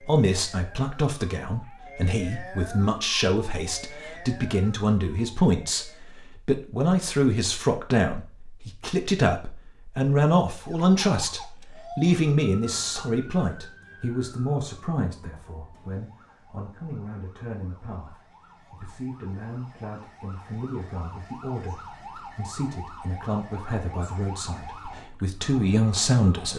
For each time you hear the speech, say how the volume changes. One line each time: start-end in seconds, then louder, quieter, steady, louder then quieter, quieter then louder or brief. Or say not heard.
0.0-26.5 quieter then louder.